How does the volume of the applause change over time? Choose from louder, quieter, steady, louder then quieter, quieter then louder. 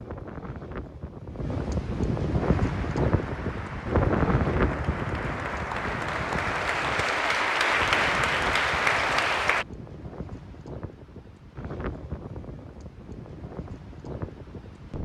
louder.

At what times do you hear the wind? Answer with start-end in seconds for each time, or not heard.
0.0-14.9.